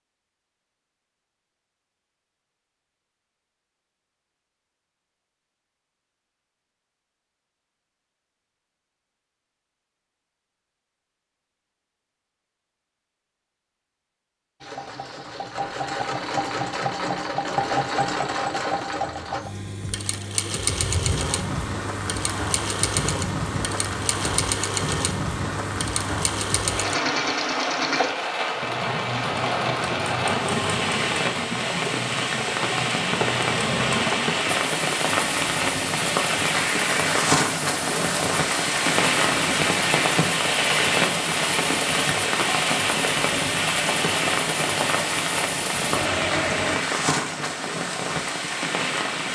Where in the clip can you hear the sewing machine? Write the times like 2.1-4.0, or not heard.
14.6-46.9.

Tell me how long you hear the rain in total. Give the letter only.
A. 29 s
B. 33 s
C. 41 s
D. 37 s
A.